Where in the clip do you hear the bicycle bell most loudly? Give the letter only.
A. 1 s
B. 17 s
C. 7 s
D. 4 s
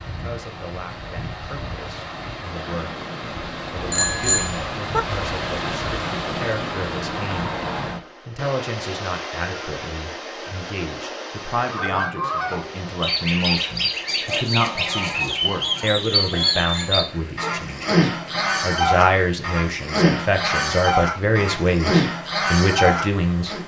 D.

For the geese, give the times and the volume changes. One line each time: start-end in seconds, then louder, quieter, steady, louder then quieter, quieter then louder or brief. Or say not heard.
11.6-23.6 steady.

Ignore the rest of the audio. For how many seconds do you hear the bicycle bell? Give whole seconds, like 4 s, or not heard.
2 s.